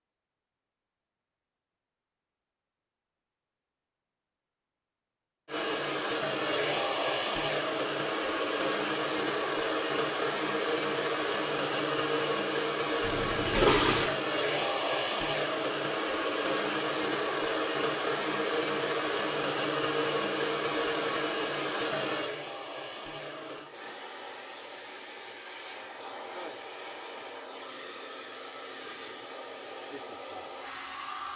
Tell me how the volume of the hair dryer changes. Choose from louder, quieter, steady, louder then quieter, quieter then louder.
quieter.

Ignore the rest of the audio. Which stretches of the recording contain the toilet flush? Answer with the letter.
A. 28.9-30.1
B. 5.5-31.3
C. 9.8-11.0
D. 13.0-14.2
D.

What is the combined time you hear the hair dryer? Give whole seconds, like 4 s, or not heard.
26 s.